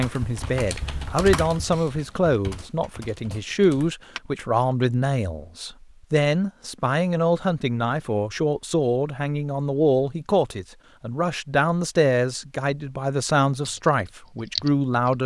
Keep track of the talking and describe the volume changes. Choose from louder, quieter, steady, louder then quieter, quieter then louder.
steady.